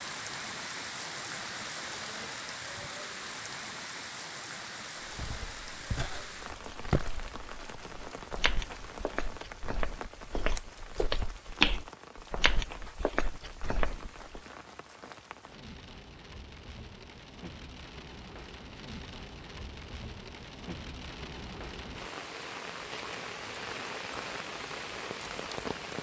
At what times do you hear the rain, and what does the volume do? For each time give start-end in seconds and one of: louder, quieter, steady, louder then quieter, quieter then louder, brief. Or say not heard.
0.0-25.9 quieter then louder.